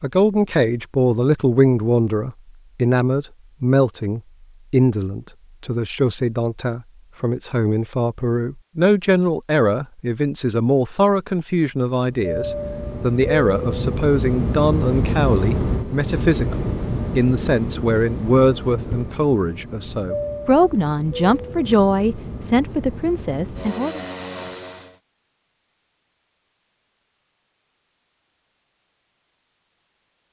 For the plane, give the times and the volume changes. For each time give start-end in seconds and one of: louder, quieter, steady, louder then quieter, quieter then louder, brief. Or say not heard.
12.1-24.9 quieter.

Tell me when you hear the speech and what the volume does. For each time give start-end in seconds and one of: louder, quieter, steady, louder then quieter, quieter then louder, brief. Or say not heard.
0.0-24.0 steady.